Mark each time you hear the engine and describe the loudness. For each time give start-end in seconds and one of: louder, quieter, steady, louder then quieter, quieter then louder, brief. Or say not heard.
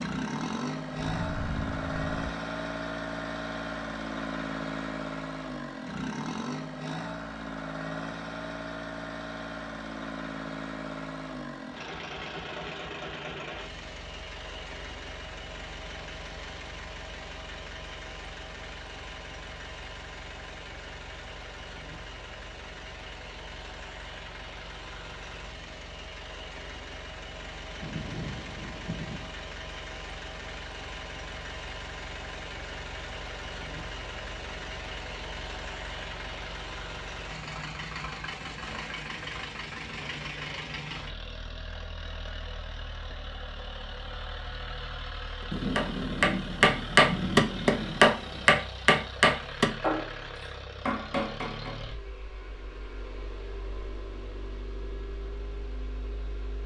0.0-56.6 quieter.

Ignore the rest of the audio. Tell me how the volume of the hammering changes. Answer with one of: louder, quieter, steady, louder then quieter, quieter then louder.
quieter.